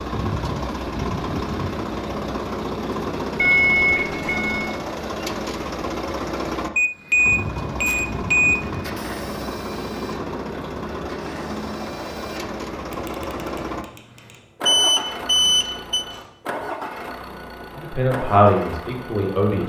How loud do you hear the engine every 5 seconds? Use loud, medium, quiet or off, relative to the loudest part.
loud, loud, loud, medium.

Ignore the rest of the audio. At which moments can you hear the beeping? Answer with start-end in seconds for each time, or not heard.
3.4-4.8, 6.8-8.6, 14.7-16.1.